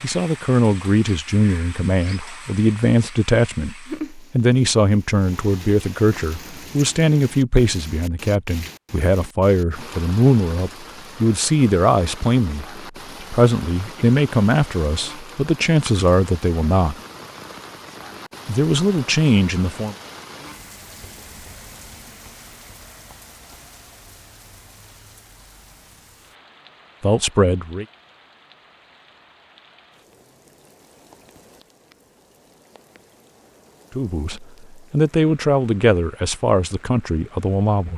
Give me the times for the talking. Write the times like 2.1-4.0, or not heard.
0.0-16.9, 18.4-19.9, 27.0-27.9, 34.0-37.9.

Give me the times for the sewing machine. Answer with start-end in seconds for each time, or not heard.
not heard.